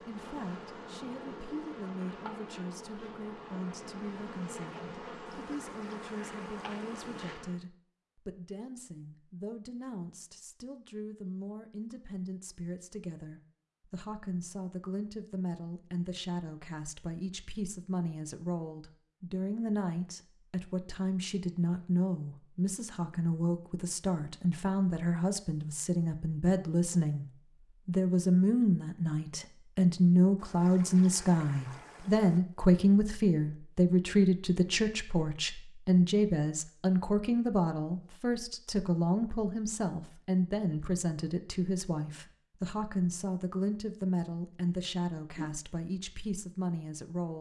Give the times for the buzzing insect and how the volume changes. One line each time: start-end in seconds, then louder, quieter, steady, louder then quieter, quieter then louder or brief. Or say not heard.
0.0-7.7 steady.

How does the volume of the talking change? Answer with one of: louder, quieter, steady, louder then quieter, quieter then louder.
louder then quieter.